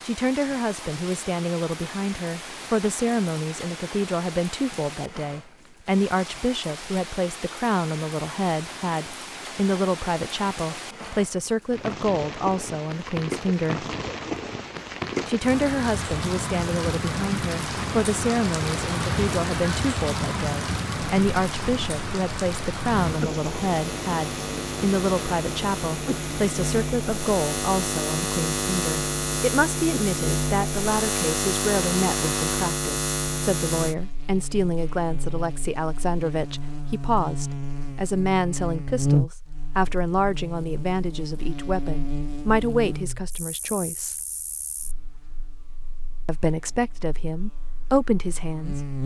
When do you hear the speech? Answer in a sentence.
The speech can be heard from 0.1 to 13.8 s, from 15.2 to 44.1 s and from 46.2 to 48.9 s.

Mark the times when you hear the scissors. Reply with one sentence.
You can't hear the scissors here.